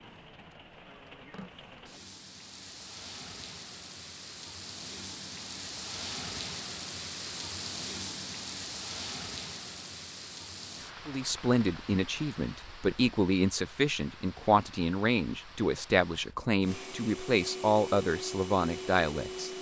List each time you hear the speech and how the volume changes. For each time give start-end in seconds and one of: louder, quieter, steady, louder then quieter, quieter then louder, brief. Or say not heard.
11.1-19.5 steady.